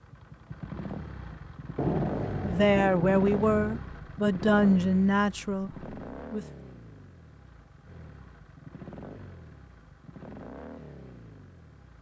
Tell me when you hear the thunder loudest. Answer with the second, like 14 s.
2 s.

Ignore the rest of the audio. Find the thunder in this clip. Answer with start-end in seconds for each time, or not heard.
1.8-3.8.